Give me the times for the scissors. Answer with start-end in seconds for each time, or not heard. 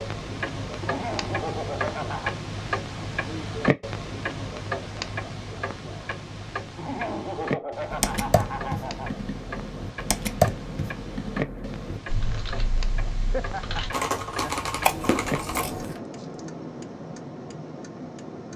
14.8-16.0.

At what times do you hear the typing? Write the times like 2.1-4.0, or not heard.
7.9-15.7.